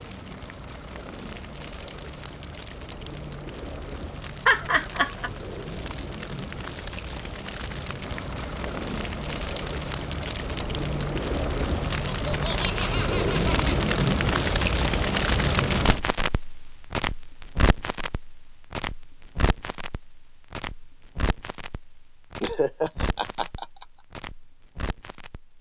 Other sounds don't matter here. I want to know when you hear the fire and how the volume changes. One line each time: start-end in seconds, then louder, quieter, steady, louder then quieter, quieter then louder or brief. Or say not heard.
0.0-25.5 louder then quieter.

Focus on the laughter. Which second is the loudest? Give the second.
5 s.